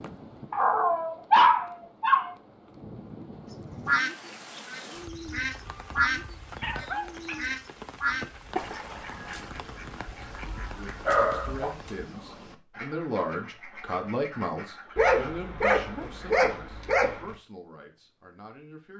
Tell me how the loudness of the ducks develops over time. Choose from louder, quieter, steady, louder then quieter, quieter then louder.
quieter.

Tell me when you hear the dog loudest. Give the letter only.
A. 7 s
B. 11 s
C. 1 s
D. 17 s
C.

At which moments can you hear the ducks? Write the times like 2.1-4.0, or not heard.
3.9-15.4.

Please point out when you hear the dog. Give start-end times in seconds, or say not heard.
0.5-2.4, 5.7-7.4, 10.1-11.8, 14.9-17.4.